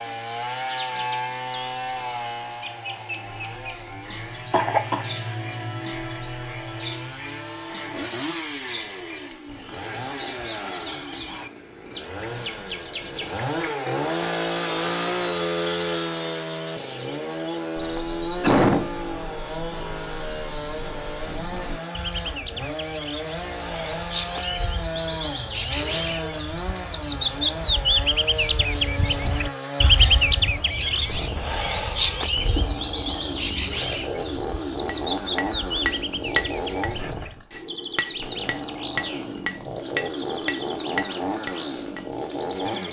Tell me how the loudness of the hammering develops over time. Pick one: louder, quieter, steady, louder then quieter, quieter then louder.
quieter then louder.